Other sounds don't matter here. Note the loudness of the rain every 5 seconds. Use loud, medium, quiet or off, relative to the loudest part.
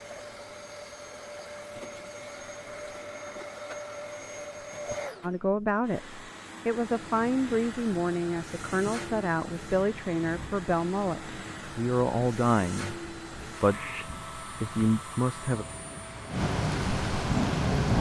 off, quiet, quiet, loud.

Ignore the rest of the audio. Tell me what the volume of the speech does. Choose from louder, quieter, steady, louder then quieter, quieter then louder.
steady.